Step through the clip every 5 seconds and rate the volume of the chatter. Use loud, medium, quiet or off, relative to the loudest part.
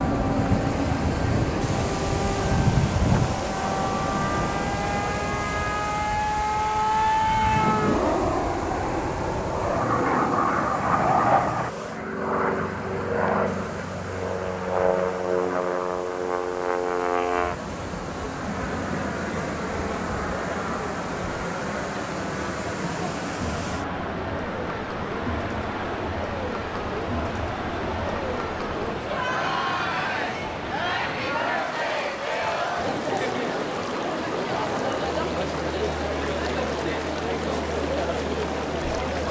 off, off, off, medium, medium, loud, loud, loud.